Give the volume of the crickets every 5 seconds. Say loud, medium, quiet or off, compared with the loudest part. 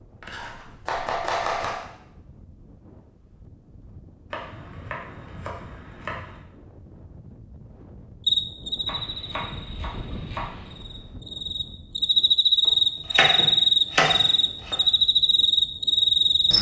off, medium, loud, loud.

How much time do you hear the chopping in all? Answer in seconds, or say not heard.
8 s.